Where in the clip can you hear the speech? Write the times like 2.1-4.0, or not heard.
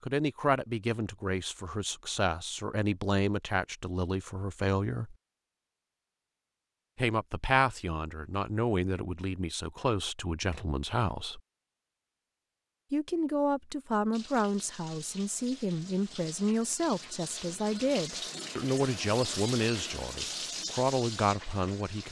0.0-5.2, 7.0-11.4, 12.9-22.0.